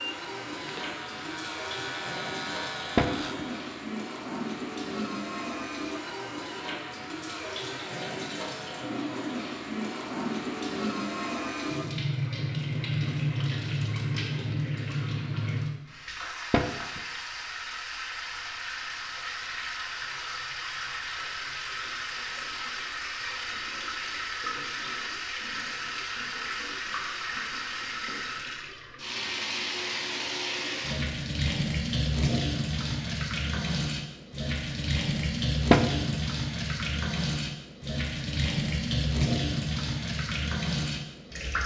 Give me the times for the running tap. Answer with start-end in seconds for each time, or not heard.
0.0-41.6.